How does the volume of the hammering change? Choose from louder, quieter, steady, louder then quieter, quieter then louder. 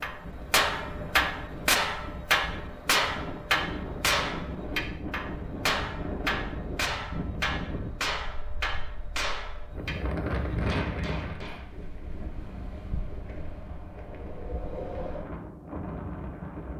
quieter.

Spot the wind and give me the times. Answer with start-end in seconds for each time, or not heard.
0.0-16.7.